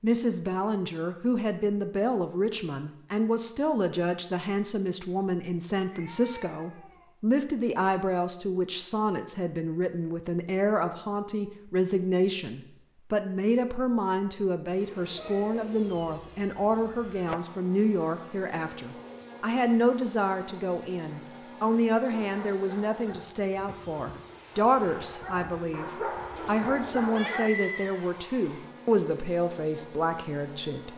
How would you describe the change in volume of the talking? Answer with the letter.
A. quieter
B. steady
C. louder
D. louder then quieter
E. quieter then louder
B.